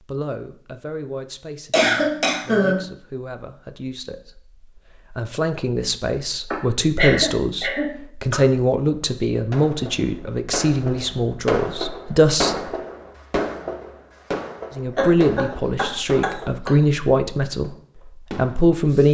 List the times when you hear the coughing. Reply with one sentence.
You can hear the coughing from 1.7 to 2.9 s, from 6.5 to 8.4 s and from 14.9 to 16.8 s.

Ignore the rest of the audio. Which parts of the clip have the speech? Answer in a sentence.
The speech can be heard from 0.1 to 12.6 s, from 14.8 to 17.7 s and from 18.4 to 19.1 s.